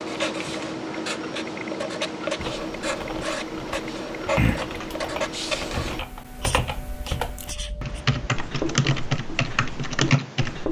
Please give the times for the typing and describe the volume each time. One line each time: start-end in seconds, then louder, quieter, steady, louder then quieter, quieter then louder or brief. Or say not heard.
2.4-10.6 louder.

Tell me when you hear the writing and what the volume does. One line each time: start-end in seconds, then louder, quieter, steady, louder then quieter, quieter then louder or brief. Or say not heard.
0.0-10.6 quieter then louder.